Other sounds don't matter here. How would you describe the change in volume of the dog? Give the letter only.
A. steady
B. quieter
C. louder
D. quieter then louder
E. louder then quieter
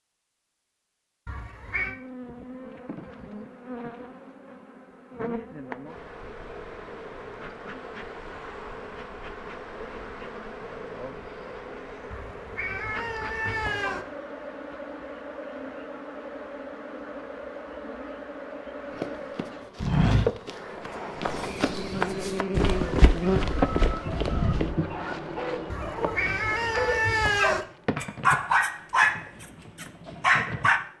C.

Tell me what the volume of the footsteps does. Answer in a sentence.
The volume of the footsteps goes down, then up.